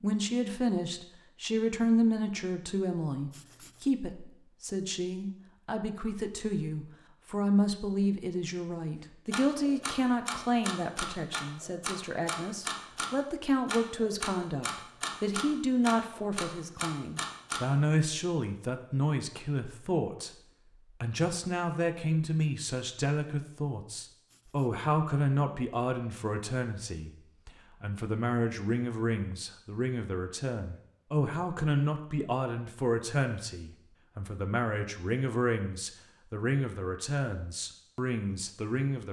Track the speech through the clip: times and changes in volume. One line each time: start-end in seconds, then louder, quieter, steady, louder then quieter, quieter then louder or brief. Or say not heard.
0.0-20.3 steady
21.0-39.0 steady.